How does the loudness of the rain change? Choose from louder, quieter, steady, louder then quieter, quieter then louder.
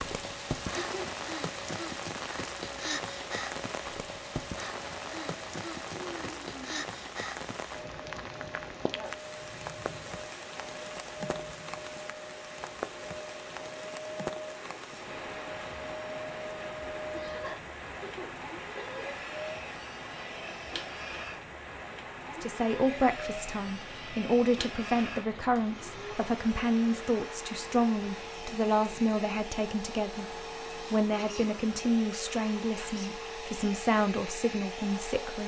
quieter.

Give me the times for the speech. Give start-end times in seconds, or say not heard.
22.4-35.4.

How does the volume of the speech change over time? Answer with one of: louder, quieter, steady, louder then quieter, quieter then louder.
steady.